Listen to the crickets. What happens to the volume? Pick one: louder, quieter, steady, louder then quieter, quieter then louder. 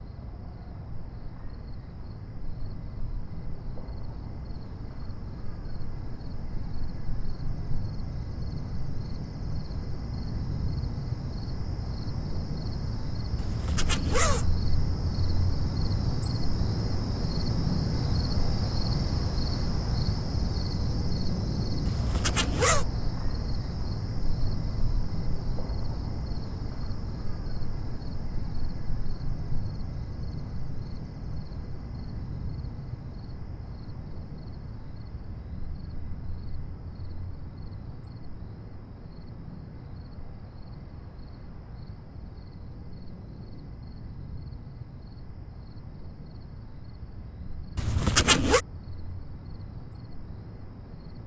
louder then quieter.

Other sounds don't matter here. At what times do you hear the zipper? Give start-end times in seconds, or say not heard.
13.3-14.4, 21.9-22.9, 47.8-48.6.